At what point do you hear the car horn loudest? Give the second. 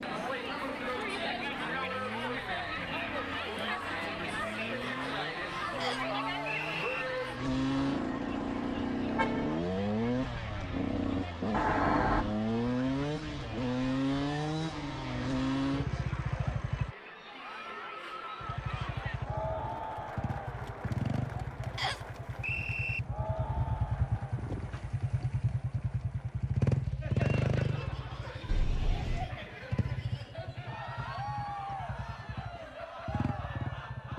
12 s.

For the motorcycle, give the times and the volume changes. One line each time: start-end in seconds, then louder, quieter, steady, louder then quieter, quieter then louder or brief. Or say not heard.
0.0-16.9 louder
18.4-34.1 louder then quieter.